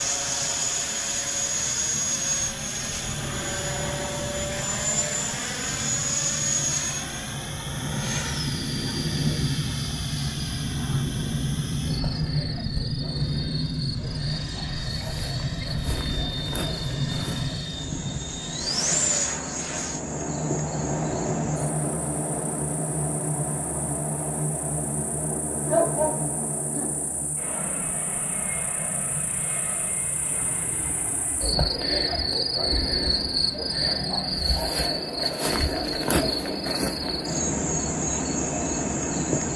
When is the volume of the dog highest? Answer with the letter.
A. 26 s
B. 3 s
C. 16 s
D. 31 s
A.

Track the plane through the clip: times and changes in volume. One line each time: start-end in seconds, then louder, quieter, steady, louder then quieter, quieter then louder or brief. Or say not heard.
0.0-39.5 quieter.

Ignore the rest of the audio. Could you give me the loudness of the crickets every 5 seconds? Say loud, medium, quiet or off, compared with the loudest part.
quiet, quiet, medium, medium, medium, quiet, loud, loud.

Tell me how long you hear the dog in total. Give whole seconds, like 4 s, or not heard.
2 s.